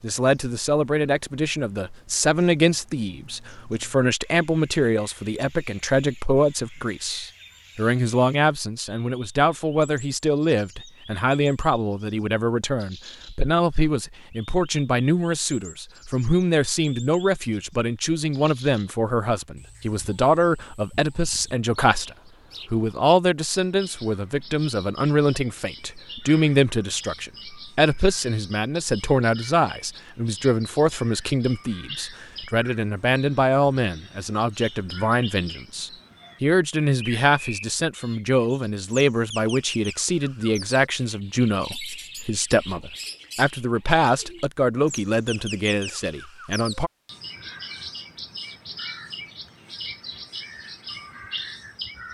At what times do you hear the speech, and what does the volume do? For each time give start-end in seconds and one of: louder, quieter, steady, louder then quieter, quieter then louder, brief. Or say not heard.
0.0-46.9 steady.